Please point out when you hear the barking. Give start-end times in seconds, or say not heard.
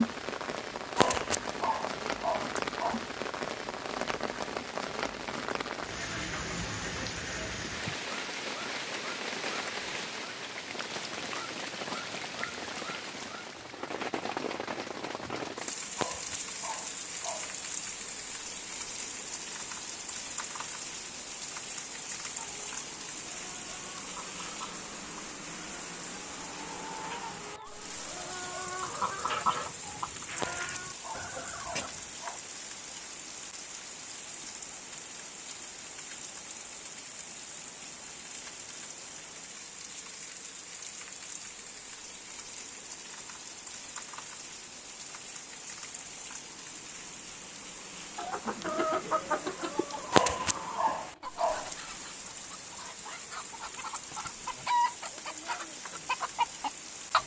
0.9-3.0, 15.9-17.6, 30.4-32.4, 50.1-51.8.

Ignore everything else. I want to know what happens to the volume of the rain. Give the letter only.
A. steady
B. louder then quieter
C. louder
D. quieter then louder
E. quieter
E.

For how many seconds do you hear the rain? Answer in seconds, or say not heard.
57 s.